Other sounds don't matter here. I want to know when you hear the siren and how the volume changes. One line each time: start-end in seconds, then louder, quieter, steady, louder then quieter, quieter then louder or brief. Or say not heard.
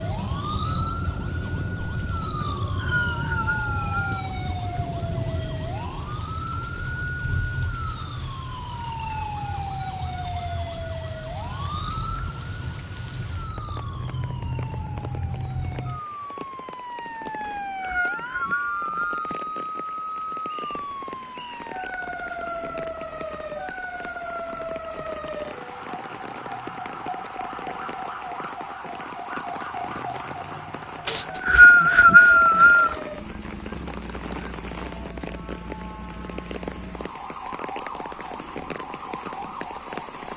0.0-40.3 quieter.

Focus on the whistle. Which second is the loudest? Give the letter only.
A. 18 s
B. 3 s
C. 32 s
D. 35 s
C.